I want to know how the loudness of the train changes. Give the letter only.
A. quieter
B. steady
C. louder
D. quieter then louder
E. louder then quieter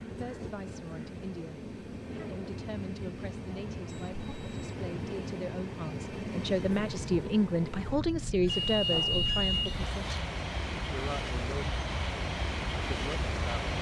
C.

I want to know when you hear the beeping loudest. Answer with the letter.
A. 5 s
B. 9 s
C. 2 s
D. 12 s
B.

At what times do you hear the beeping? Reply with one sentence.
The beeping can be heard from 3.9 to 4.8 s and from 8.4 to 10.2 s.